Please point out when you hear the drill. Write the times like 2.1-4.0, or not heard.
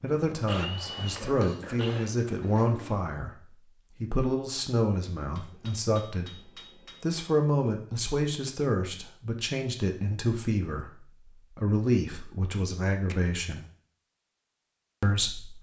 0.1-2.1.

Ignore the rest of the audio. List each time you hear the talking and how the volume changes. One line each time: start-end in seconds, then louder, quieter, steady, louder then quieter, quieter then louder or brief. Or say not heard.
0.0-13.7 steady
15.0-15.5 brief.